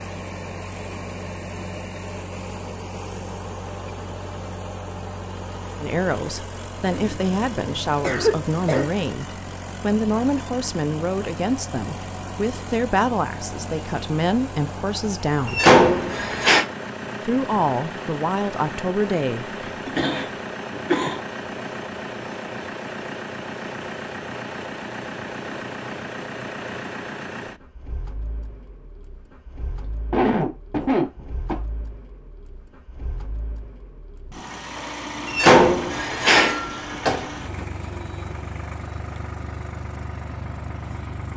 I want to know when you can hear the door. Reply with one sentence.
The door can be heard from 15.4 to 16.6 s and from 35.2 to 37.6 s.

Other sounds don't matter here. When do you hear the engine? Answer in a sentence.
The engine can be heard from 0.0 to 41.3 s.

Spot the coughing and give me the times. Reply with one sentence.
You can hear the coughing from 7.0 to 8.9 s, from 19.6 to 21.2 s and from 30.1 to 31.6 s.